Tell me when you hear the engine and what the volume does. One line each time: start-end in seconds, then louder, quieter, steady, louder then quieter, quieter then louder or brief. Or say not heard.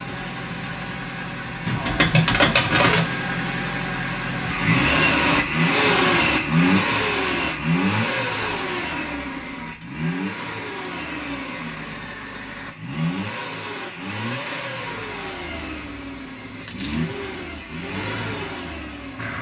0.0-19.3 louder then quieter.